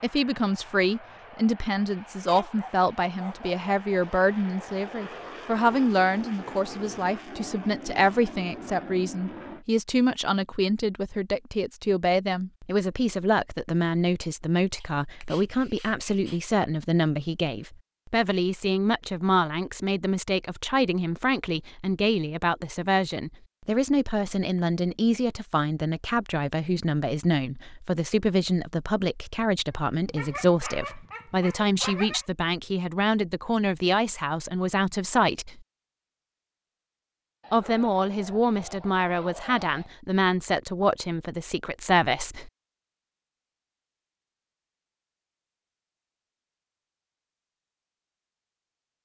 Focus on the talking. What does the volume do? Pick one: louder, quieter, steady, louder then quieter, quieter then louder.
steady.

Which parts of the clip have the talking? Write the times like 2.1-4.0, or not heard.
0.0-35.6, 37.5-42.5.